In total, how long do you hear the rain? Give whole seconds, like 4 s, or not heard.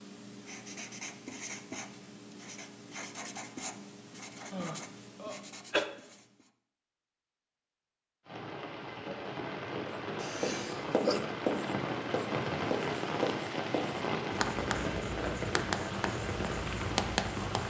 9 s.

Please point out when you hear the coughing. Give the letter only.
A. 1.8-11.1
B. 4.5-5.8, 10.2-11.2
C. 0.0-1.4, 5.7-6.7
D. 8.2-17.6
B.